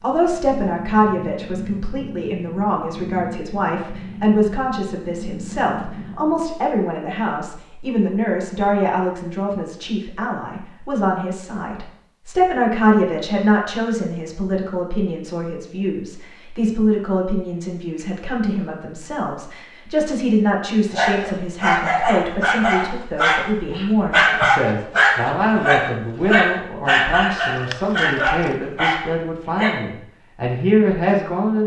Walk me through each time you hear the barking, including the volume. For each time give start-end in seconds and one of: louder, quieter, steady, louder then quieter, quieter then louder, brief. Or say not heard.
20.9-29.8 steady.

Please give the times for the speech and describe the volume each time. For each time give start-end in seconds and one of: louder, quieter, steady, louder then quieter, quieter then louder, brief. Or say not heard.
0.0-31.6 steady.